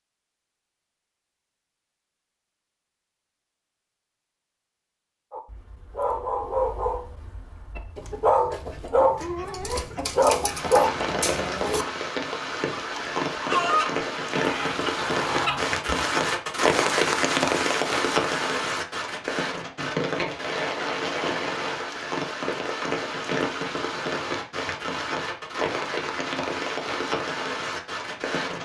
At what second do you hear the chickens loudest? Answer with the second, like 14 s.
14 s.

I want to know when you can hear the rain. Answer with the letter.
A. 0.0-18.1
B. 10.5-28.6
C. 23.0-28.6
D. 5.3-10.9
B.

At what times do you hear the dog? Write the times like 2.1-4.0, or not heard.
5.3-10.9.